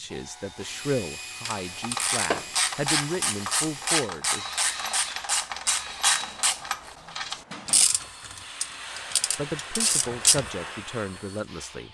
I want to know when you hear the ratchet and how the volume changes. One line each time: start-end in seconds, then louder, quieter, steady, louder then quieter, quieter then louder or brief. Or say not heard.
1.4-10.5 steady.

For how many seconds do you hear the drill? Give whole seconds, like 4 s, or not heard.
12 s.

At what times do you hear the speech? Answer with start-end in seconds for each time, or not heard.
0.0-4.5, 9.3-11.8.